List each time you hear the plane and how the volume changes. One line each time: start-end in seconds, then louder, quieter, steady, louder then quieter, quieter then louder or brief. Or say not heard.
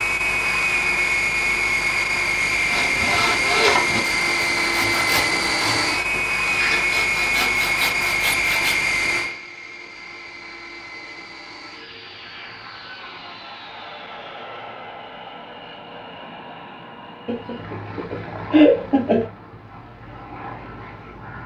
0.0-21.4 quieter.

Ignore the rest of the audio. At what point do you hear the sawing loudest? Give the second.
4 s.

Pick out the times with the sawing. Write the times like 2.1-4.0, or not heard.
2.6-8.8.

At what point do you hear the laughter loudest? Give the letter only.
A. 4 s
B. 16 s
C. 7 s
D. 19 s
D.